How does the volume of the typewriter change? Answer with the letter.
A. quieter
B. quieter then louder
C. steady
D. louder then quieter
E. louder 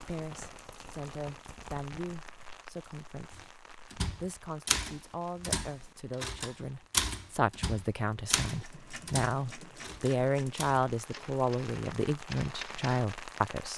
A.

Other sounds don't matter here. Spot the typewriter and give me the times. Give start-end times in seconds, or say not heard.
3.4-13.1.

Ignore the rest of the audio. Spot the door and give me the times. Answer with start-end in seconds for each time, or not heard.
not heard.